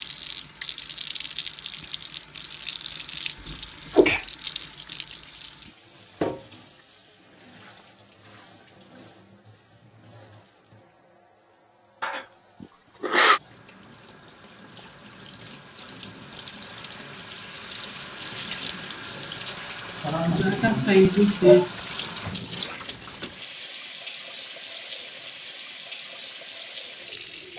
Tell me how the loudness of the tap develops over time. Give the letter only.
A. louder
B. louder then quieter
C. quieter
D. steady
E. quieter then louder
E.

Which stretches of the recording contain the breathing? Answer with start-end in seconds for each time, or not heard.
not heard.